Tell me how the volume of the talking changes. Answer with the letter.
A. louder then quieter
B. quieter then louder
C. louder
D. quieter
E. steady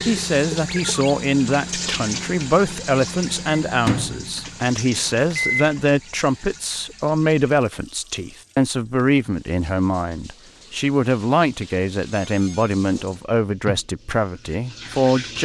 E.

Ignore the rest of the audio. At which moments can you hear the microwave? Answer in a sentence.
You can hear the microwave from 0.0 to 5.8 s.